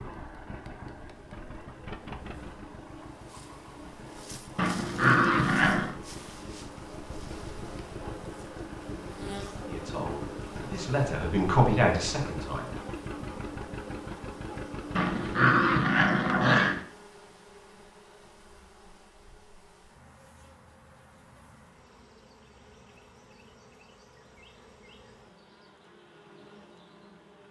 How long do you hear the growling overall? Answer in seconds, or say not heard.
3 s.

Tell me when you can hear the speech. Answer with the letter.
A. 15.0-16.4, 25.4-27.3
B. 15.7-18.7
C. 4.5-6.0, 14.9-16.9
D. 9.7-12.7
D.